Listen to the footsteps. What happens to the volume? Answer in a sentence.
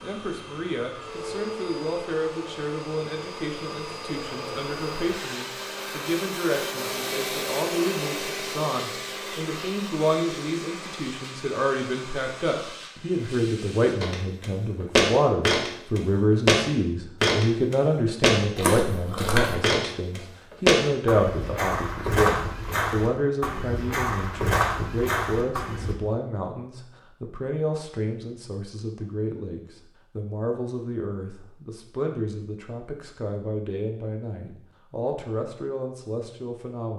The loudness of the footsteps goes down.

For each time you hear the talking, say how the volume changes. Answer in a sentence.
The talking can be heard from 0.0 to 36.9 s, getting louder then quieter.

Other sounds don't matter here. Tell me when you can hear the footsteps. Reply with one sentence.
You can hear the footsteps from 14.0 to 25.9 s.